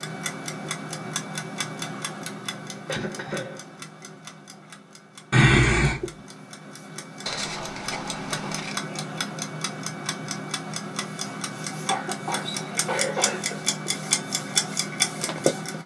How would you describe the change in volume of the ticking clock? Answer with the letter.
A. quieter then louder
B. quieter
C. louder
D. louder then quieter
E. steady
A.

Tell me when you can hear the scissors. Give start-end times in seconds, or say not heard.
7.2-8.8.